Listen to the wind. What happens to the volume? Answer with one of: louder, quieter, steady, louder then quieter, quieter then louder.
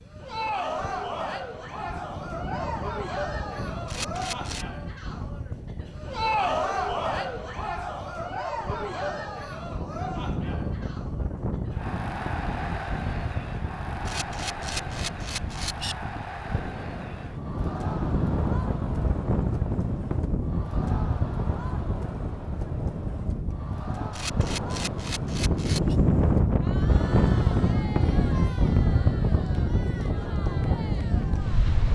louder.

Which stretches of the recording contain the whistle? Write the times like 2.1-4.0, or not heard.
not heard.